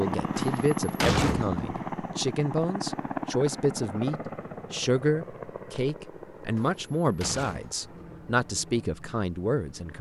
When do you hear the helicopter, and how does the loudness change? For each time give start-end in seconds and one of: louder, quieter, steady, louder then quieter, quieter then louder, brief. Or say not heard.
0.0-9.9 quieter.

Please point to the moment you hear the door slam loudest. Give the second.
1 s.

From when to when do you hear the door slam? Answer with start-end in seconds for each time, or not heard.
0.3-1.8, 6.5-8.0.